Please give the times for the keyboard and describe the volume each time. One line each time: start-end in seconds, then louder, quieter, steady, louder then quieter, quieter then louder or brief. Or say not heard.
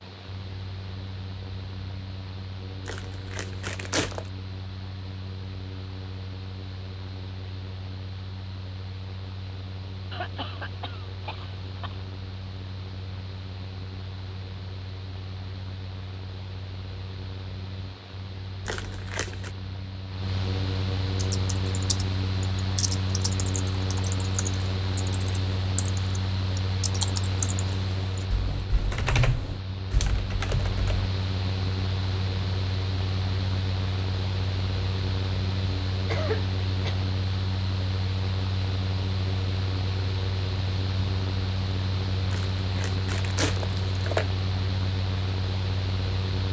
21.1-31.1 louder.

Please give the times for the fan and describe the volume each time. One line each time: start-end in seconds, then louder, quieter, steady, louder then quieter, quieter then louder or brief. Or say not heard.
0.0-46.4 louder.